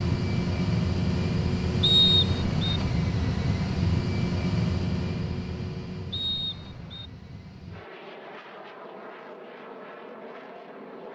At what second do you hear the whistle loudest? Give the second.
2 s.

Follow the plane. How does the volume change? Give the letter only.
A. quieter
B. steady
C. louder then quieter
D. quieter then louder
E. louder
A.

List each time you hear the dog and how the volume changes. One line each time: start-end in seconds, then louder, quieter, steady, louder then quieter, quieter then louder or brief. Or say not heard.
not heard.